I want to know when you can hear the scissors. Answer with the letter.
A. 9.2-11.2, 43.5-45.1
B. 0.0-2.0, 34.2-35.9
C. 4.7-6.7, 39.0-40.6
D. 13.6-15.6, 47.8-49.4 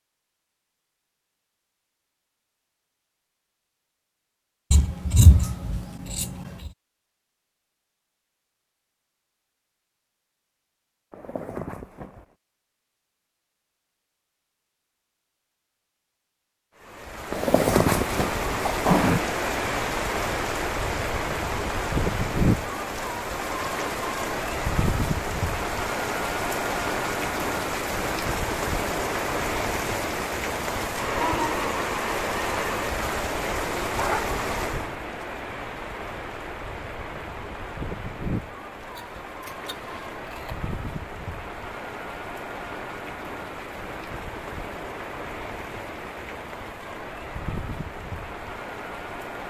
C.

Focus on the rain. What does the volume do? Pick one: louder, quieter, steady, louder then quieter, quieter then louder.
quieter.